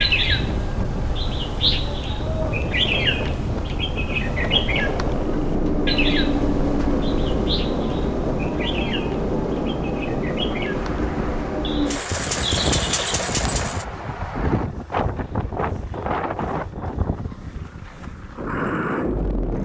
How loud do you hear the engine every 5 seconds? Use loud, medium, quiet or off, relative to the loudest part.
medium, loud, loud, medium.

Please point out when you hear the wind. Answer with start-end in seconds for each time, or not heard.
0.1-19.6.